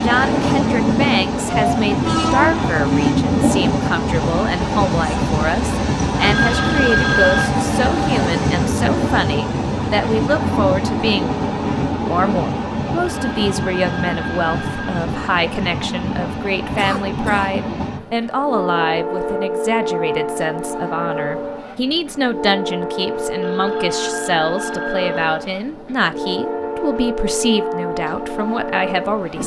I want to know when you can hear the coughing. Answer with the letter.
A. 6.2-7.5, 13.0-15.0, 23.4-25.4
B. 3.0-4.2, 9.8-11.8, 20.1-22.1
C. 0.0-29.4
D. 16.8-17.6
D.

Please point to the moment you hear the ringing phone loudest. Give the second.
7 s.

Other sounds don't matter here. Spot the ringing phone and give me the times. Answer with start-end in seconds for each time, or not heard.
6.2-7.5, 13.0-15.0, 23.4-25.4.